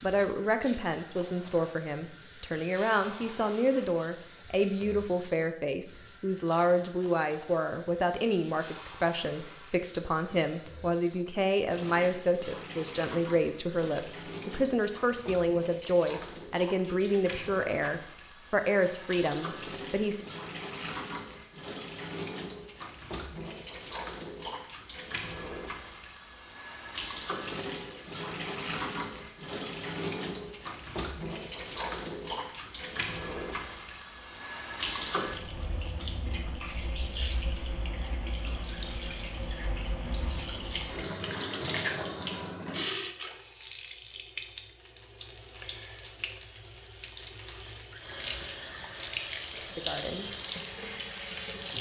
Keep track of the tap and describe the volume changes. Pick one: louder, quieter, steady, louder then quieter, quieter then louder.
louder.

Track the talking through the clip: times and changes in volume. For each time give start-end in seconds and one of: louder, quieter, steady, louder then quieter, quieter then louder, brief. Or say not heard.
0.0-20.2 steady
49.6-50.3 brief.